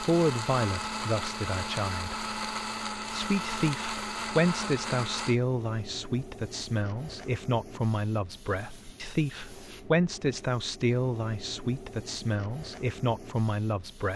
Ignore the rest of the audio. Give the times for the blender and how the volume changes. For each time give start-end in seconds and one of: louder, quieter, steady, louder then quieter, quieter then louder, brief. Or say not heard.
0.0-5.3 steady.